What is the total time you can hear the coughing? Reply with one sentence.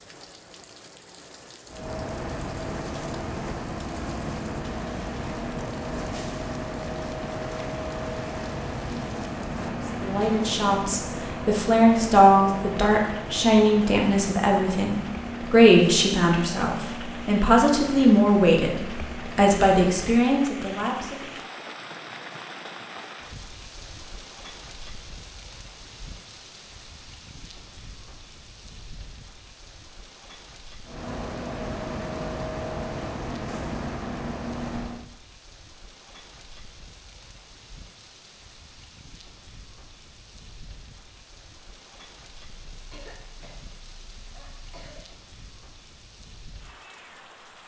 The coughing can be heard for 2 seconds in total.